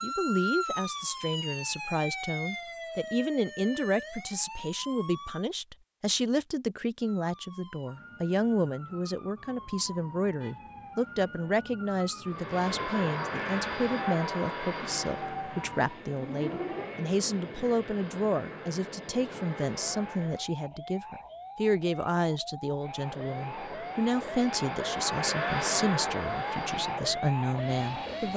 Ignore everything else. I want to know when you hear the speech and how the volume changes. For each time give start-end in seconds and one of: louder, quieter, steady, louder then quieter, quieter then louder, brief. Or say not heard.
0.0-28.3 steady.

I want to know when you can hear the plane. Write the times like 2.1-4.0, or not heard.
12.2-20.5, 22.8-28.3.